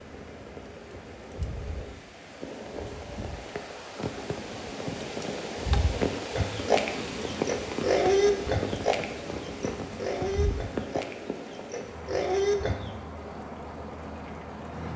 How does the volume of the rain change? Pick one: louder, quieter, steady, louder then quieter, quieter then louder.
louder then quieter.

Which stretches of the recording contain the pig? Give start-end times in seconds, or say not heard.
6.3-12.9.